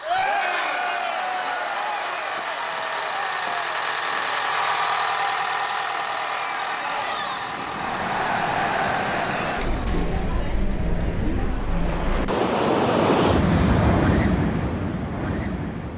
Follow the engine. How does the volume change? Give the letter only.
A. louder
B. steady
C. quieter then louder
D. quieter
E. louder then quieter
E.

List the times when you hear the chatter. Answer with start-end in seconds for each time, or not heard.
0.0-12.3.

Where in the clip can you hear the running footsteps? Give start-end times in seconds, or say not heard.
not heard.